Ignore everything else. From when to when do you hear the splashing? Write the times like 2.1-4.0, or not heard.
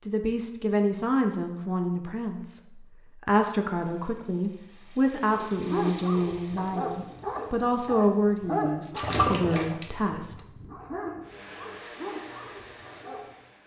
8.9-10.2.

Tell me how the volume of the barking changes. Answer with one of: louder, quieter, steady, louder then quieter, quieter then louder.
quieter.